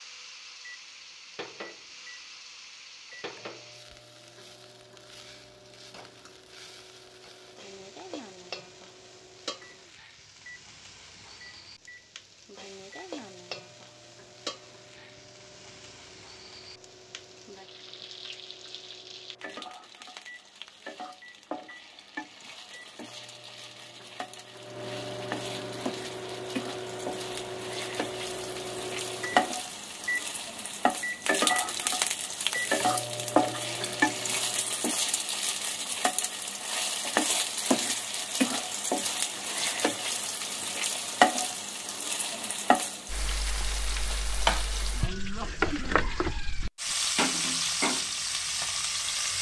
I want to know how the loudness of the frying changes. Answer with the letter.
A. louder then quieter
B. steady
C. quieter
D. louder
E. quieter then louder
D.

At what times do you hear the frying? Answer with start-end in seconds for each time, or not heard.
0.0-49.3.